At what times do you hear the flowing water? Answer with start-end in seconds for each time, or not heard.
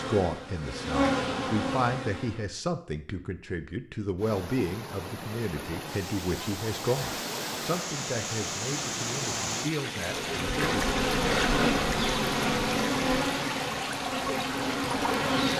4.2-15.5.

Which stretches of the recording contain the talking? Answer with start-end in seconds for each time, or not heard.
0.0-10.8.